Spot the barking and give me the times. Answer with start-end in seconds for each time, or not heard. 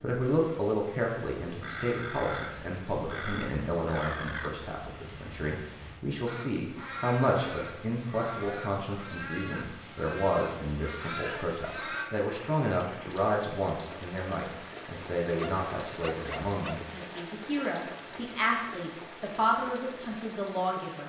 15.4-16.9.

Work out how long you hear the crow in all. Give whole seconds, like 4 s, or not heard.
11 s.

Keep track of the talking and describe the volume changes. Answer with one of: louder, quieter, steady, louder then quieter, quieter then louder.
steady.